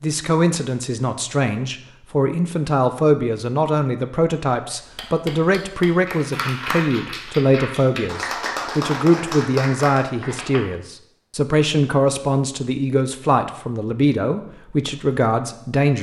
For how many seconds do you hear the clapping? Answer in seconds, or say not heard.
6 s.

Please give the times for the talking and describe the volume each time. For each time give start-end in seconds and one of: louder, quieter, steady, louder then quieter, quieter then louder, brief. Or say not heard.
0.0-15.9 steady.